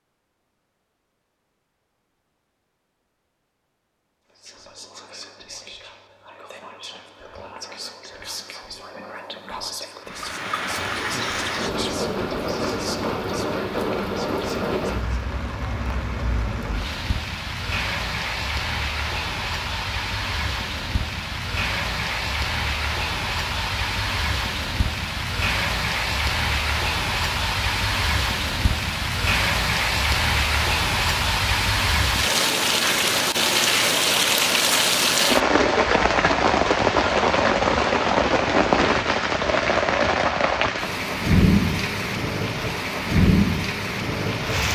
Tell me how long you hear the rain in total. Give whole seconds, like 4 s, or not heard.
35 s.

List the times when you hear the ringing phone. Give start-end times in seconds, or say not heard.
not heard.